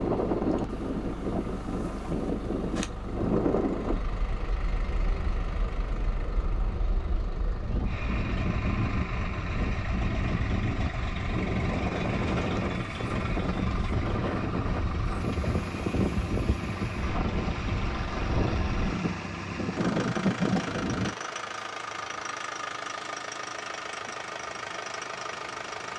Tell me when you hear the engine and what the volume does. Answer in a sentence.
The engine can be heard from 0.0 to 25.9 s, getting louder.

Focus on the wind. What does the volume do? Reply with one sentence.
The loudness of the wind goes down, then up.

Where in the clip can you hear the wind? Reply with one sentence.
The wind can be heard from 0.0 to 21.1 s.